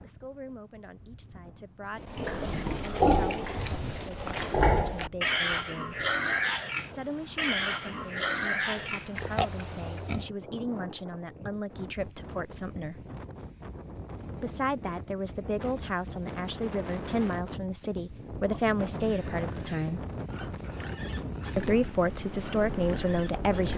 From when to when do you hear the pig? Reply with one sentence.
The pig can be heard from 2.0 to 10.3 s and from 18.4 to 23.7 s.